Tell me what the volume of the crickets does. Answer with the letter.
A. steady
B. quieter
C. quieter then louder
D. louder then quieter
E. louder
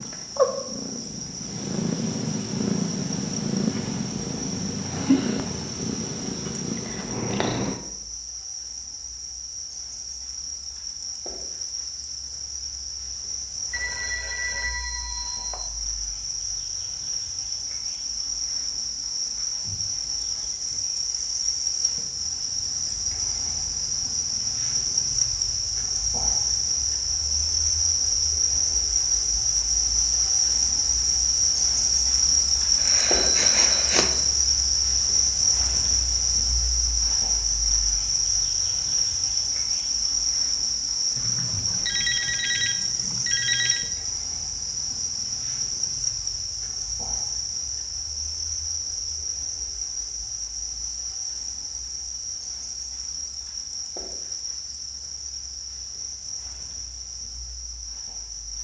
D.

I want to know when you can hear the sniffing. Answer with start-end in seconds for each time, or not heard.
32.8-34.1.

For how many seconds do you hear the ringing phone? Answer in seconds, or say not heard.
6 s.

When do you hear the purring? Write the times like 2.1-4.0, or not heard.
0.0-7.8.